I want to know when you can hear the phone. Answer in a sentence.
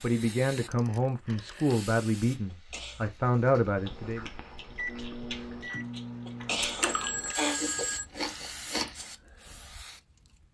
The phone can be heard from 0.6 to 1.8 s and from 6.8 to 8.1 s.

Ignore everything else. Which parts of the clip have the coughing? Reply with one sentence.
The coughing can be heard from 2.5 to 3.1 s and from 6.2 to 7.6 s.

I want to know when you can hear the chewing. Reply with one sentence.
You can hear the chewing from 2.6 to 9.1 s.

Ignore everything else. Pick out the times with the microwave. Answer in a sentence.
You can hear the microwave from 3.8 to 7.2 s.